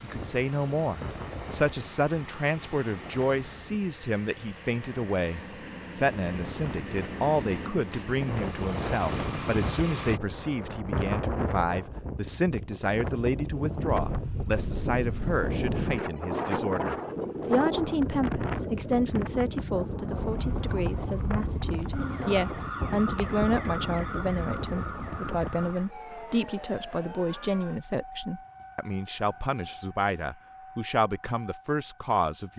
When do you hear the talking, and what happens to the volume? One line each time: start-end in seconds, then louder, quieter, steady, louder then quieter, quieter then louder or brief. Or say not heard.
0.0-32.5 steady.